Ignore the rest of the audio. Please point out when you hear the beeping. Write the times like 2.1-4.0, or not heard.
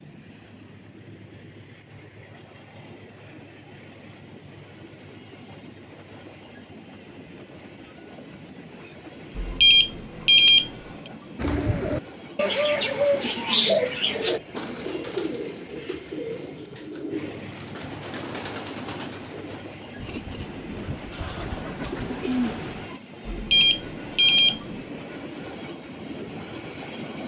9.3-10.7, 23.2-24.6.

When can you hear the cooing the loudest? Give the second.
14 s.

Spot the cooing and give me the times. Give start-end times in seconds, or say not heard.
11.3-22.9.